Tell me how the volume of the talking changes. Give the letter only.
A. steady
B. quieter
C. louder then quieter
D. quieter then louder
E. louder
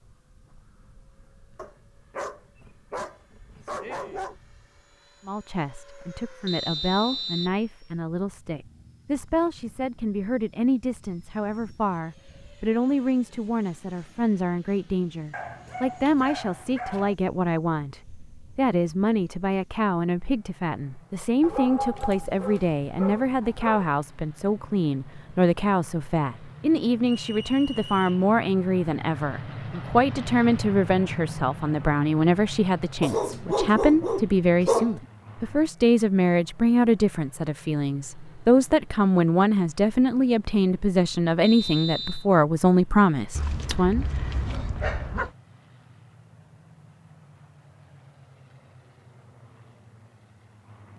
E.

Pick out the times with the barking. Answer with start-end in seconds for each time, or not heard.
1.6-4.3, 15.3-17.1, 21.4-23.9, 33.0-35.0, 43.4-45.3.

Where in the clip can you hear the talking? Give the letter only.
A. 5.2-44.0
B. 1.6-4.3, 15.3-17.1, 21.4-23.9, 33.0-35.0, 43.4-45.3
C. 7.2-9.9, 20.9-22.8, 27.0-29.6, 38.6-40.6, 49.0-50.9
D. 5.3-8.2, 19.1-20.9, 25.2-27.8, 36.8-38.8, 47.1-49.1
A.